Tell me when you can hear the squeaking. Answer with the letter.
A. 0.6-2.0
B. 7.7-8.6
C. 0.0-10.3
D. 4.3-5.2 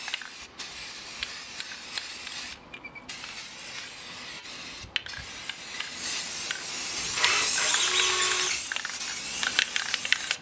B.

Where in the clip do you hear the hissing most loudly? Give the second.
10 s.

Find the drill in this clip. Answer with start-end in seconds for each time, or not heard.
7.0-8.5.